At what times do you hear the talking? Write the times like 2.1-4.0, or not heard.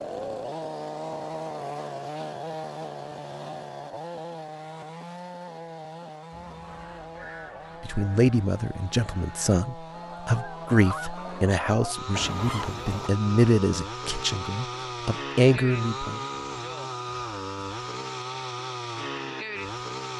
7.8-16.2.